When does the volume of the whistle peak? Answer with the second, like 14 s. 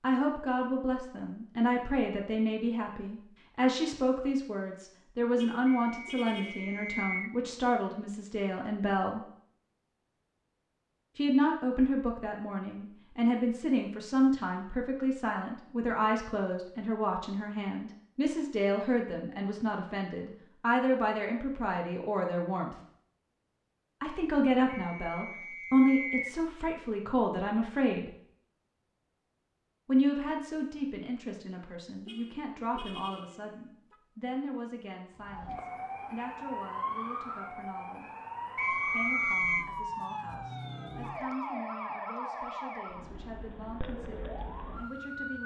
39 s.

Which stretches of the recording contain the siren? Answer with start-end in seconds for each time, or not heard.
35.1-45.4.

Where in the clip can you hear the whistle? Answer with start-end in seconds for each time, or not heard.
5.7-7.3, 24.6-26.4, 38.5-39.6.